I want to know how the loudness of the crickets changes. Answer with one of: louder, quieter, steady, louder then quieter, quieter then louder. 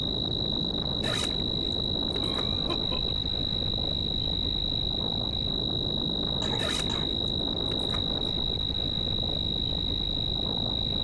steady.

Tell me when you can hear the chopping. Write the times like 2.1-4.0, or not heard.
not heard.